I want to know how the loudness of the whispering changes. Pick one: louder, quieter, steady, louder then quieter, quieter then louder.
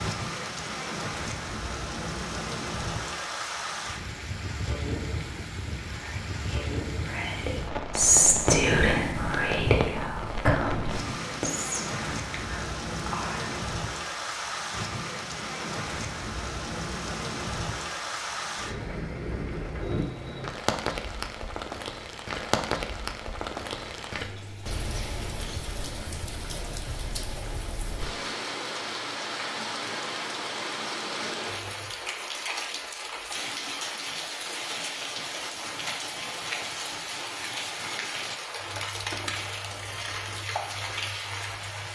louder then quieter.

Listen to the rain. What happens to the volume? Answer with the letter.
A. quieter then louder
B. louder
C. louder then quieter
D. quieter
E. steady
E.